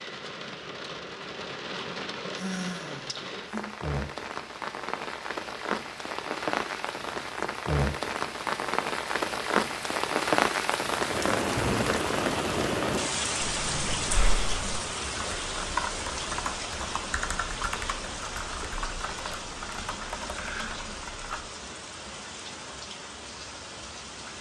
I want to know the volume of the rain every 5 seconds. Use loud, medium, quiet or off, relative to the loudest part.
medium, loud, loud, medium, quiet.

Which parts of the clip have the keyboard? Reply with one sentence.
You can hear the keyboard from 15.1 to 21.5 s.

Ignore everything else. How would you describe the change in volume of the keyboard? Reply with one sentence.
The volume of the keyboard goes down.